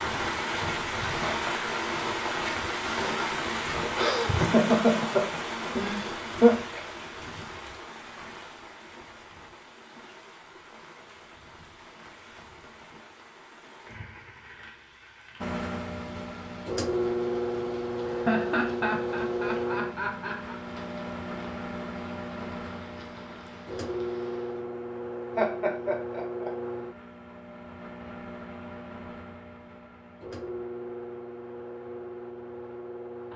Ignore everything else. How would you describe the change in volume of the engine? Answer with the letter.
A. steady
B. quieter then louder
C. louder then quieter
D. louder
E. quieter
E.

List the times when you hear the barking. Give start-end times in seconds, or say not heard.
not heard.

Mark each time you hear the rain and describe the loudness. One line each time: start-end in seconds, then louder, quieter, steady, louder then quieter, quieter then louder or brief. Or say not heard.
0.0-24.6 quieter.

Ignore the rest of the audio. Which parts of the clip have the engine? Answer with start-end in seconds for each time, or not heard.
15.4-33.3.